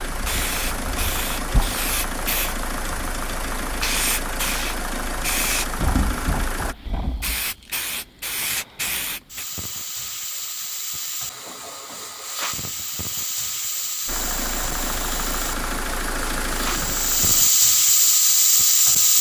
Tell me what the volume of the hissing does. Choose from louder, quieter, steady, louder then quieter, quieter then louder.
louder.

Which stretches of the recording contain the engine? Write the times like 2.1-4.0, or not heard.
0.0-6.8, 14.1-17.4.